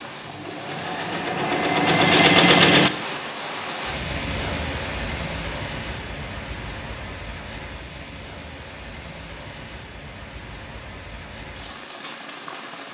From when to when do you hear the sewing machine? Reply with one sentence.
You can hear the sewing machine from 0.0 to 2.9 s.